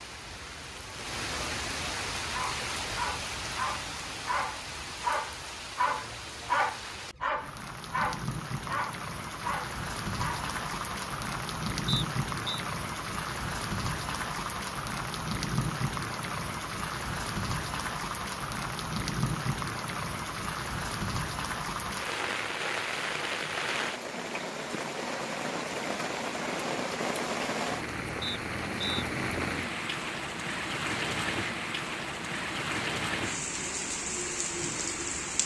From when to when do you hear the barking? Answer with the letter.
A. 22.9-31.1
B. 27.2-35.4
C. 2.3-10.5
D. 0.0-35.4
C.